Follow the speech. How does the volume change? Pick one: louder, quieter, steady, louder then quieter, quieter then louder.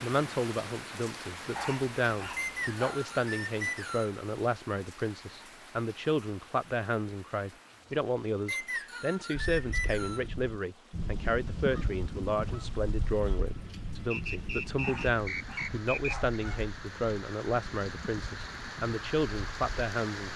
steady.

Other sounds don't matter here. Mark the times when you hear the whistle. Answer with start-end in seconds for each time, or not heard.
2.4-4.2, 8.4-10.3, 14.1-16.1.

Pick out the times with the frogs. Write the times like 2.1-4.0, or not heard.
not heard.